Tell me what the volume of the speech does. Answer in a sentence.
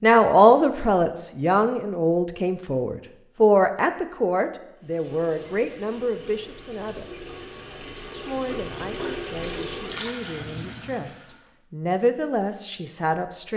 The volume of the speech goes down, then up.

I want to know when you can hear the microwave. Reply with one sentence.
You can't hear the microwave here.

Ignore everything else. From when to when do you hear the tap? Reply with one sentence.
The tap can be heard from 4.8 to 11.5 s.